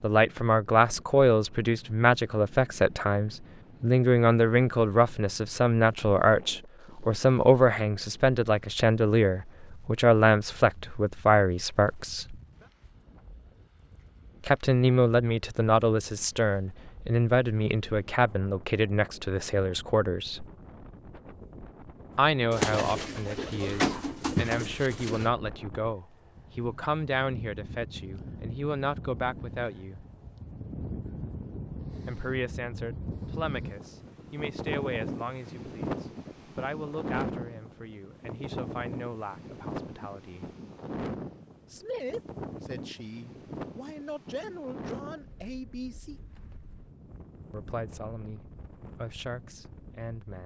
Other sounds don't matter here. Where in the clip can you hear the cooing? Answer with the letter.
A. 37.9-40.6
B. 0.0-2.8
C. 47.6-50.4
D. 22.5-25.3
D.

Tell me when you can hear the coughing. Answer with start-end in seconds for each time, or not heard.
not heard.